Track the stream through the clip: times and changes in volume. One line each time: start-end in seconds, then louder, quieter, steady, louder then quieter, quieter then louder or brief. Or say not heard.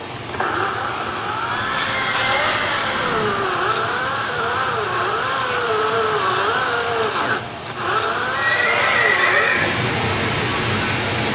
0.0-11.3 louder.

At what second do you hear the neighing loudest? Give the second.
9 s.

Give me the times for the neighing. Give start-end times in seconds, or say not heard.
1.4-3.5, 8.3-9.8.